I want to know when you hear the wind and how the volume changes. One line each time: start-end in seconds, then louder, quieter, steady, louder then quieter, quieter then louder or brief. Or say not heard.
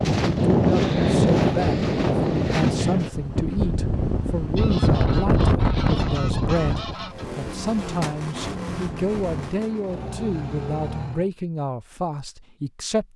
0.0-9.4 quieter.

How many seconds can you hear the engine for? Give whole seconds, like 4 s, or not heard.
4 s.